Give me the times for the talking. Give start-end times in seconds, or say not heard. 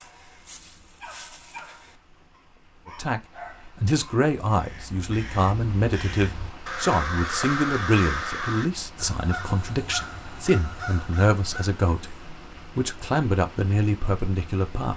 2.9-12.2, 12.8-14.9.